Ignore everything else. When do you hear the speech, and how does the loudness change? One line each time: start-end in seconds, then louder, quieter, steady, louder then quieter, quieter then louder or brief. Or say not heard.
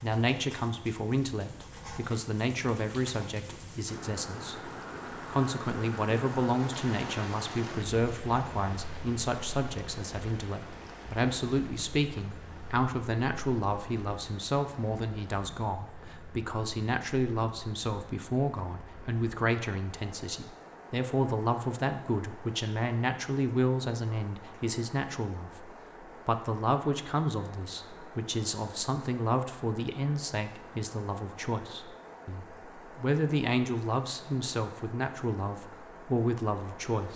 0.0-37.1 steady.